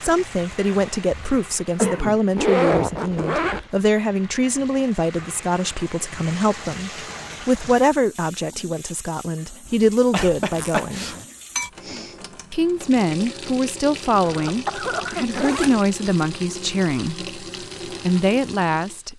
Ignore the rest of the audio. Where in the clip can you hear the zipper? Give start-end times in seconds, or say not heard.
2.4-3.6, 10.5-11.2, 14.2-15.8.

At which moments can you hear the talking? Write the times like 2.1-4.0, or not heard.
0.0-11.1, 12.5-17.3, 18.0-19.1.